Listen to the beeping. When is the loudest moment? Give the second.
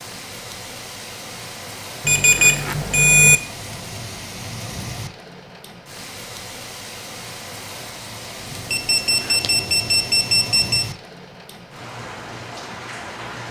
3 s.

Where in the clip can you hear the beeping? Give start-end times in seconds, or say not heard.
2.0-3.4, 8.7-10.8.